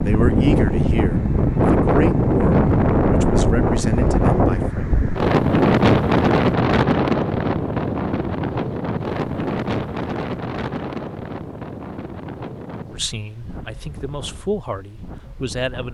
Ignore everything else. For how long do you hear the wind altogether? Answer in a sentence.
The wind can be heard for 16 seconds in total.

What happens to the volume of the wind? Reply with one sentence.
The volume of the wind goes down.